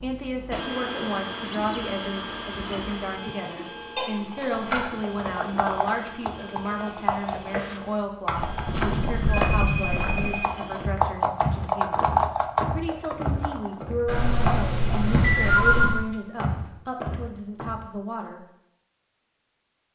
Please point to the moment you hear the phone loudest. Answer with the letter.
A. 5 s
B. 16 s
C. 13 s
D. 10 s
B.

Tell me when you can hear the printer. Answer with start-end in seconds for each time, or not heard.
0.0-10.9.